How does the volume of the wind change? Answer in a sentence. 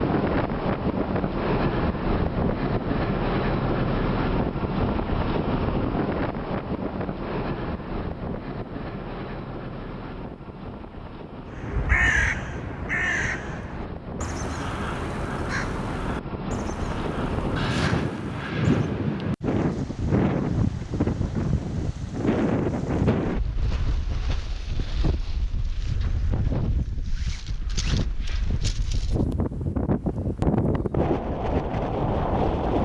The volume of the wind goes down, then up.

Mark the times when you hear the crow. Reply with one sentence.
You can hear the crow from 11.5 to 18.9 s.